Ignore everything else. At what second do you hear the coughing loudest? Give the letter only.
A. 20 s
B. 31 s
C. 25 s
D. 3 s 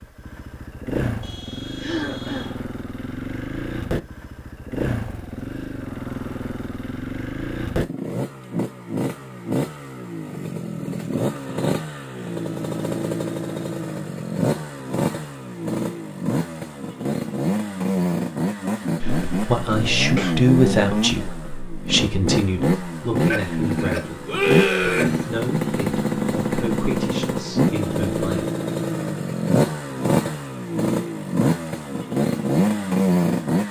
C.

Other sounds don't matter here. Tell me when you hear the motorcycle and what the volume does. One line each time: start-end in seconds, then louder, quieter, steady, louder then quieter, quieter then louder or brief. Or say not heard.
0.0-33.6 louder.